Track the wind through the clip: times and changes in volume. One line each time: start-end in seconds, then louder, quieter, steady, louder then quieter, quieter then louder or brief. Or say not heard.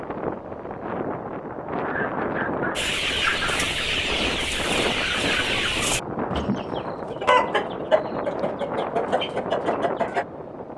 0.0-10.7 steady.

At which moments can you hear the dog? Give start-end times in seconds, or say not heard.
1.8-3.7.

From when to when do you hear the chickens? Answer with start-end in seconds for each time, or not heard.
2.8-10.2.